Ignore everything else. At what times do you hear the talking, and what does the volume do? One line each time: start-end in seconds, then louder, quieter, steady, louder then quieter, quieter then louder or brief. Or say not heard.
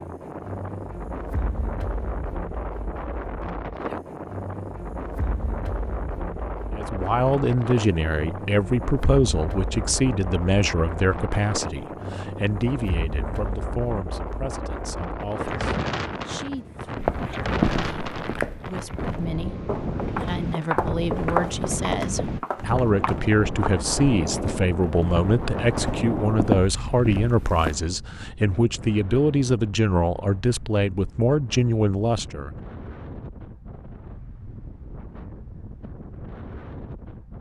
6.8-32.5 quieter then louder.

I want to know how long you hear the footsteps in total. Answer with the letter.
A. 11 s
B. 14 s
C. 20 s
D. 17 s
A.